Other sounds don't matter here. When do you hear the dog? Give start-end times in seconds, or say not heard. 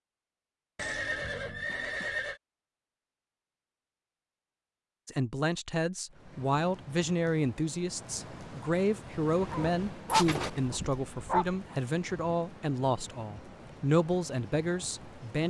9.4-11.6.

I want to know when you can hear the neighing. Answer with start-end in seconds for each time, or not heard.
0.8-2.4, 10.1-10.8.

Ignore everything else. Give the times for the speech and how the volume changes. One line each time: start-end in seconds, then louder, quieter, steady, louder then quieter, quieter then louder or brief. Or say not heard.
5.0-15.4 steady.